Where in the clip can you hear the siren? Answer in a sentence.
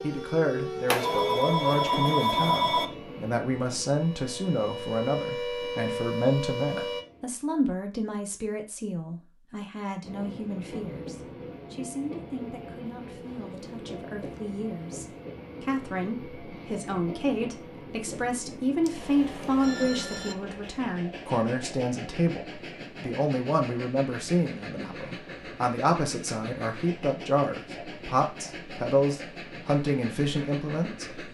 The siren can be heard from 0.0 to 7.0 s.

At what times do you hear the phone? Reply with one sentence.
You can hear the phone from 0.8 to 2.9 s and from 18.8 to 20.4 s.